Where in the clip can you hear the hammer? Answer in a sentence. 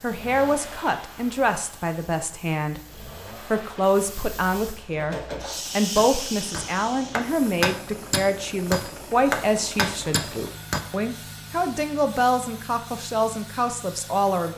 You can hear the hammer from 5.0 to 10.8 s.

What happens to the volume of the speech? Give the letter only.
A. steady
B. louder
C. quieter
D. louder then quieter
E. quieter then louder
A.